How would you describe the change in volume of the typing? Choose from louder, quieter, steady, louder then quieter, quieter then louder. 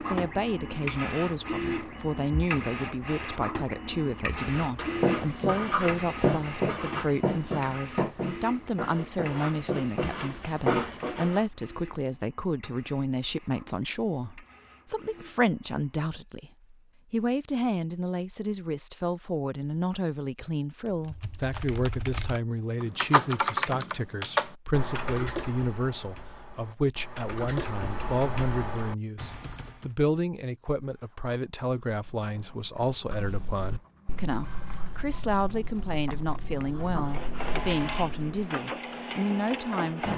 louder then quieter.